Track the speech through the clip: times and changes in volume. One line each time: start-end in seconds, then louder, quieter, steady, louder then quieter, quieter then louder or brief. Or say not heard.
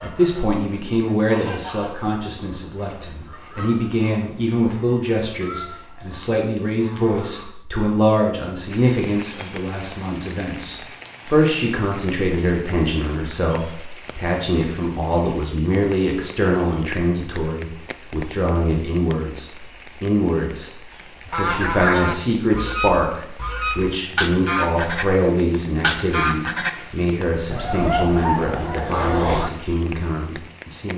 0.0-30.9 steady.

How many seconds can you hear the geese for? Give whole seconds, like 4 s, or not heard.
16 s.